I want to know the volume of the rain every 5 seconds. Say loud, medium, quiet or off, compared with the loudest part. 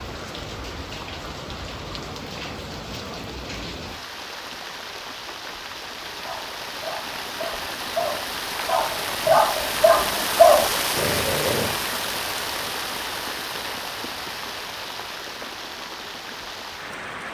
medium, loud, loud, medium.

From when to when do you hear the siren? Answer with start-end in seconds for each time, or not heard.
not heard.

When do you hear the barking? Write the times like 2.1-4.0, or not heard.
6.2-11.8.